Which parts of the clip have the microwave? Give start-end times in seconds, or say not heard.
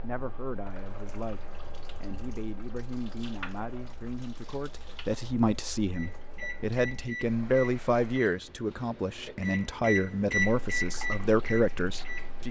5.9-12.4.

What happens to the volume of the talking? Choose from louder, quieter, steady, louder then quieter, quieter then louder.
louder.